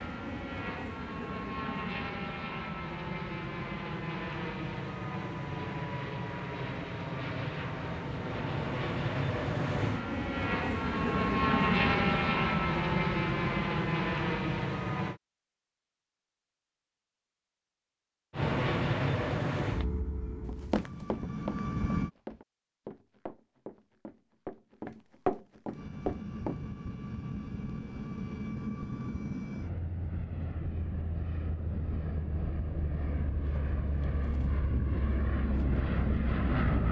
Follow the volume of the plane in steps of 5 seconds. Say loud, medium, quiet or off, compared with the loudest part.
medium, medium, loud, loud, medium, medium, medium, loud.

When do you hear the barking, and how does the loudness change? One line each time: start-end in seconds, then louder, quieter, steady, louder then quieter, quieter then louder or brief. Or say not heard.
not heard.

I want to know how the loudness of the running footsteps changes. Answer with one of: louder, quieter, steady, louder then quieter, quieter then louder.
quieter then louder.